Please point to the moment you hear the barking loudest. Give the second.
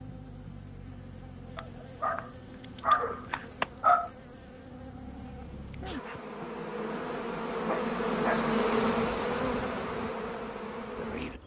4 s.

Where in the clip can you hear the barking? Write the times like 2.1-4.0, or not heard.
1.6-4.1, 7.7-8.5.